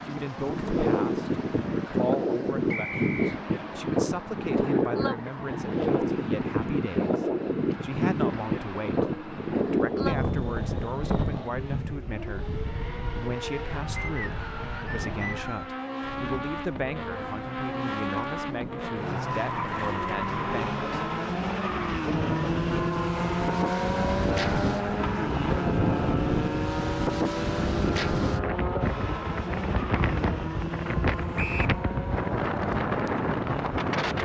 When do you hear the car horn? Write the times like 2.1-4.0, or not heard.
not heard.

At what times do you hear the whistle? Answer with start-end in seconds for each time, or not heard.
2.7-3.4, 13.9-15.8, 31.4-31.8.